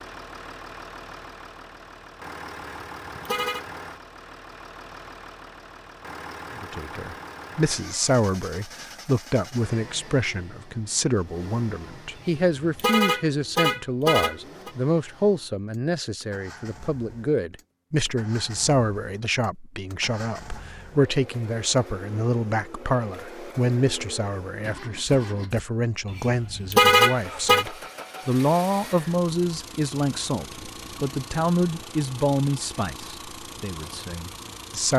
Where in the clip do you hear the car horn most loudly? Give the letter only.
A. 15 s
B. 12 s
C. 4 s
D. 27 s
D.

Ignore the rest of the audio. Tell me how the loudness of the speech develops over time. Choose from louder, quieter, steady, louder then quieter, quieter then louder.
steady.